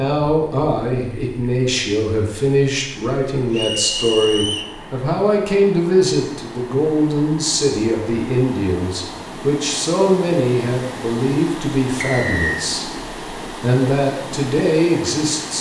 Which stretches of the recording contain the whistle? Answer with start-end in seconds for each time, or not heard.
3.5-4.8, 12.0-12.7.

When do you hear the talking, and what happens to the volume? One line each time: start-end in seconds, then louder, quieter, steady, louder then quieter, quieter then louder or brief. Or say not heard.
0.0-15.5 steady.